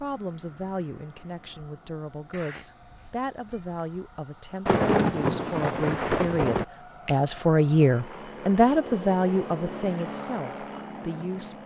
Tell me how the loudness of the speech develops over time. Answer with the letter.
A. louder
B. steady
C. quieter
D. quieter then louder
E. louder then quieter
E.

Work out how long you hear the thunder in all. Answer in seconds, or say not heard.
2 s.